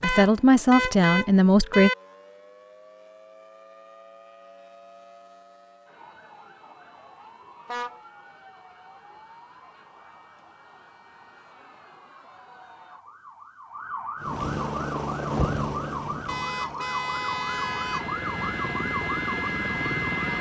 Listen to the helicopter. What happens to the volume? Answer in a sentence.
The loudness of the helicopter goes down, then up.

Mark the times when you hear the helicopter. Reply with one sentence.
You can hear the helicopter from 14.2 to 20.3 s.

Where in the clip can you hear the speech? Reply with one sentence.
The speech can be heard from 0.0 to 1.9 s.